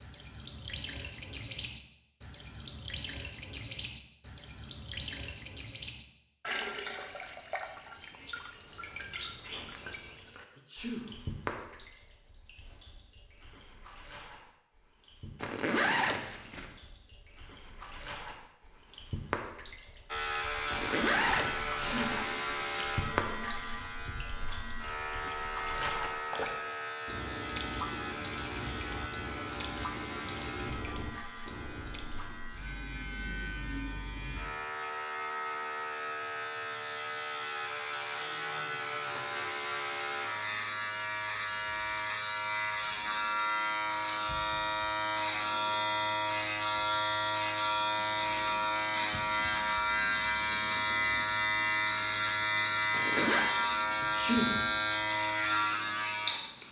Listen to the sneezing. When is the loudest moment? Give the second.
54 s.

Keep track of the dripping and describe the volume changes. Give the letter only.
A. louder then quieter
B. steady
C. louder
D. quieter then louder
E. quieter
D.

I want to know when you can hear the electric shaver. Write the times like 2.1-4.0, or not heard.
20.1-56.6.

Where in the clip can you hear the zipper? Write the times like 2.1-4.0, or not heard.
15.4-16.7, 20.7-23.1, 52.9-53.5.